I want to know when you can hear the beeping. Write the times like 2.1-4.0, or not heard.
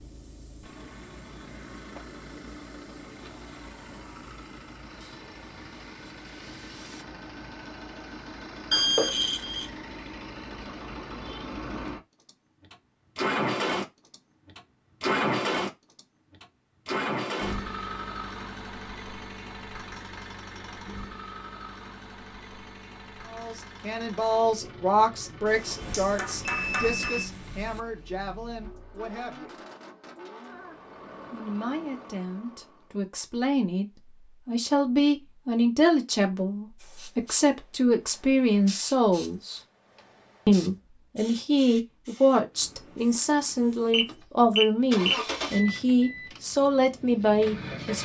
8.7-9.7, 25.4-27.2, 43.9-45.1.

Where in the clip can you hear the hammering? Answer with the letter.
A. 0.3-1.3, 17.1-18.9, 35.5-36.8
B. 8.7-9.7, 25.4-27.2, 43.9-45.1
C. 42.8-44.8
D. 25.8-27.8
D.